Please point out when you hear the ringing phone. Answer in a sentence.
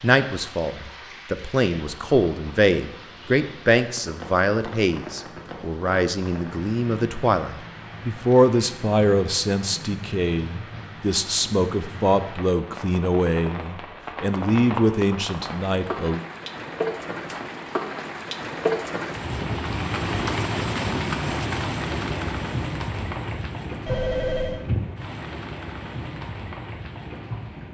The ringing phone can be heard from 23.9 to 24.6 s.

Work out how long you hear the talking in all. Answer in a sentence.
You can hear the talking for 16 seconds altogether.